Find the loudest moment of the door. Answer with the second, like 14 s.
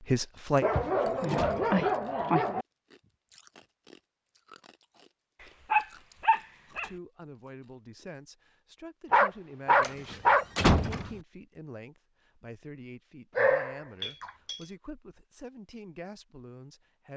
11 s.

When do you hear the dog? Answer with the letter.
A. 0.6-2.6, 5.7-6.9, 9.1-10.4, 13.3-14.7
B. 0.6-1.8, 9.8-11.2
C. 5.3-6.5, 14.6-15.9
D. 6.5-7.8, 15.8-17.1
A.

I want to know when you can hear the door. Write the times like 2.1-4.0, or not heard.
0.6-1.8, 9.8-11.2.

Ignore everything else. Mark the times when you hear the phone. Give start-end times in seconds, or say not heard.
not heard.